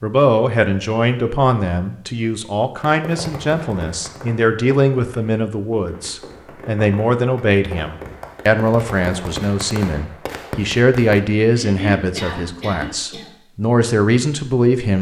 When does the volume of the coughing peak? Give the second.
12 s.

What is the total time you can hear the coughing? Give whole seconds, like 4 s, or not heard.
2 s.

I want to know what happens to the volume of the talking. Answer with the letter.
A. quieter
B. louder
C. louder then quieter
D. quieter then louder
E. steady
E.